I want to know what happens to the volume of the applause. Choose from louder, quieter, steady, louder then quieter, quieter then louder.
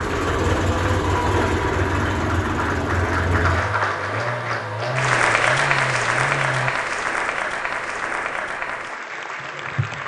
louder then quieter.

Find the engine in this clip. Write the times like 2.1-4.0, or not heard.
0.0-6.7.